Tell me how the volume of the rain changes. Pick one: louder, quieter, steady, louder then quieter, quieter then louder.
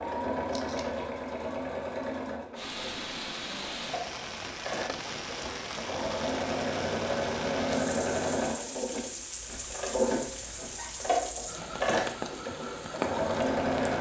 steady.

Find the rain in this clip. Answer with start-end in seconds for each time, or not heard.
2.5-13.9.